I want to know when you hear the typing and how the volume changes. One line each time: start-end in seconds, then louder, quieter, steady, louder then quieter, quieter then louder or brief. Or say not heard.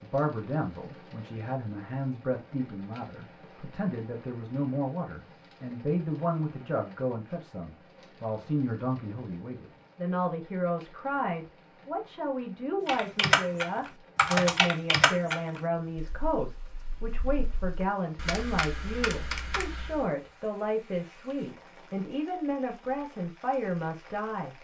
12.8-20.1 quieter then louder.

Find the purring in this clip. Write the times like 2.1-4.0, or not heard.
not heard.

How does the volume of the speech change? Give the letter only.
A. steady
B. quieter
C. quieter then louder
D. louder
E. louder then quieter
A.